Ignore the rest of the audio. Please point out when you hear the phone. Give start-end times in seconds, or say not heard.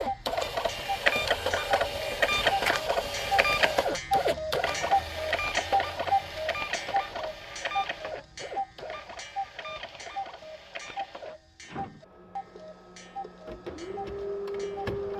not heard.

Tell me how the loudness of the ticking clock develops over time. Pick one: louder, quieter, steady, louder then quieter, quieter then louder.
louder then quieter.